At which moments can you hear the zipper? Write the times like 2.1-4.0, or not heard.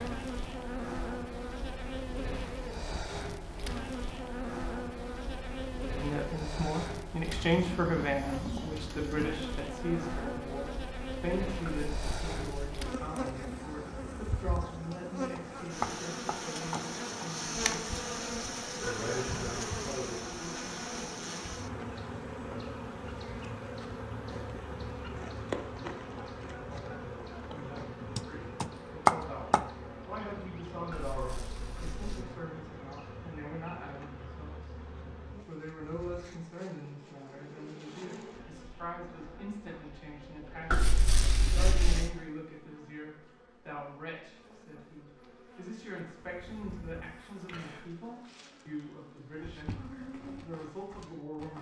11.7-12.8, 30.9-32.2, 40.7-42.1.